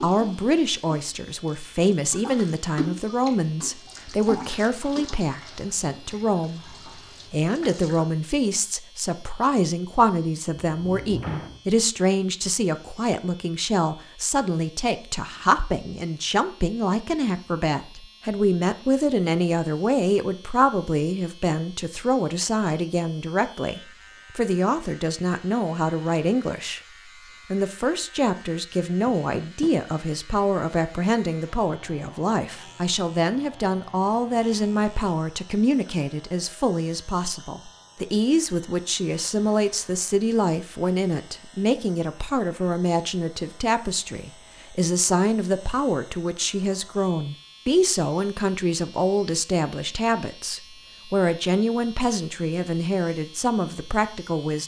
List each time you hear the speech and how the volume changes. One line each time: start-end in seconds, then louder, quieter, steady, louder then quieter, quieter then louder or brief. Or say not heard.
0.0-26.8 steady
27.5-54.6 steady.